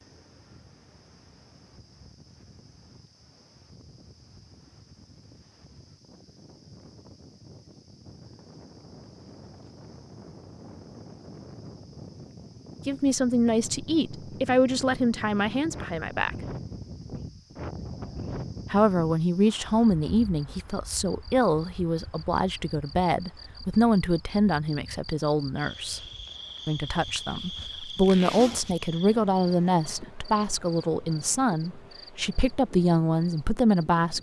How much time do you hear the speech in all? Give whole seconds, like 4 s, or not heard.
18 s.